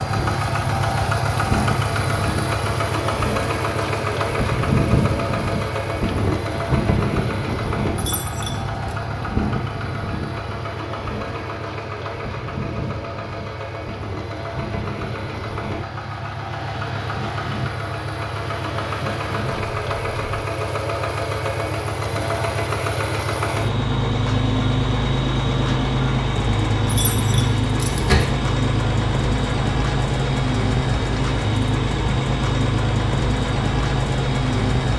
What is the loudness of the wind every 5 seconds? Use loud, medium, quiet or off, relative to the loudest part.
loud, loud, medium, medium, off, off, off.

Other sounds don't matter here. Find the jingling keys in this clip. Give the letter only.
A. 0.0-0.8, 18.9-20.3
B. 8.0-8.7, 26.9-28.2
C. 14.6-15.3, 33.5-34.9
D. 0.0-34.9
B.